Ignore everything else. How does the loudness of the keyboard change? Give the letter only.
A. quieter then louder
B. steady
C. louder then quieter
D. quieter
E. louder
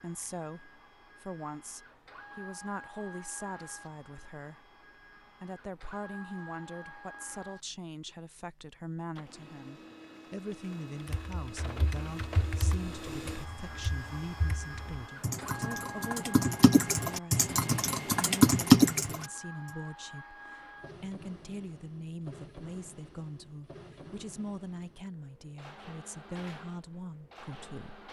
A.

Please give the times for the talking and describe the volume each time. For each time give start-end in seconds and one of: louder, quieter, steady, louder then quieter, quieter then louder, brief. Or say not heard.
0.0-28.0 steady.